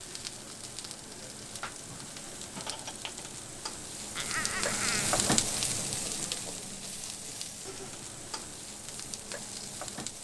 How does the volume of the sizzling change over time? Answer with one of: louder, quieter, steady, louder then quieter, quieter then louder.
louder then quieter.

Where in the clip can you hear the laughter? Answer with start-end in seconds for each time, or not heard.
4.2-5.2.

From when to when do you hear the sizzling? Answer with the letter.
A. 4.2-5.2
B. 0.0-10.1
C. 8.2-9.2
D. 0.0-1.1
B.